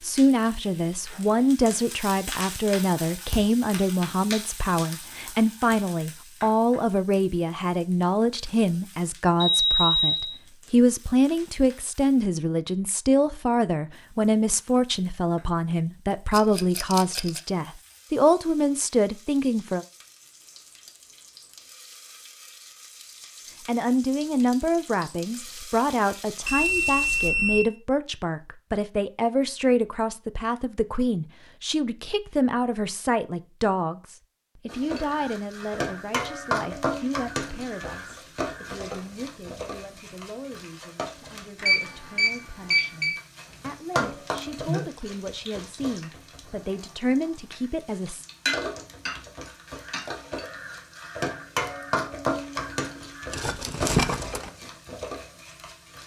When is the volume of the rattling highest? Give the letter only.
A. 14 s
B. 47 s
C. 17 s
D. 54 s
D.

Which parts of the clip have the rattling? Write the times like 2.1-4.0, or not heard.
16.3-17.4, 53.3-54.5.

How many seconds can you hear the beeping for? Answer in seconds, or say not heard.
4 s.